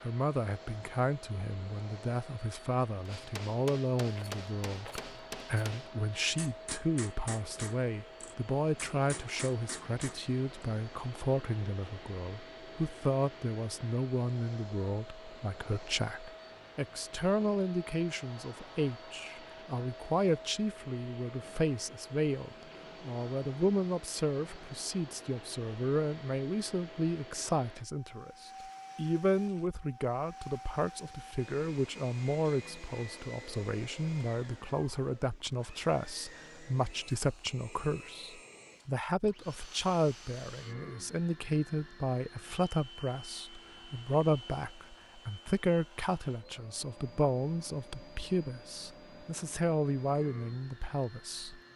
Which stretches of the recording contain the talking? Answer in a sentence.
The talking can be heard from 0.0 to 51.6 s.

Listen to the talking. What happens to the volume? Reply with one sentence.
The loudness of the talking stays about the same.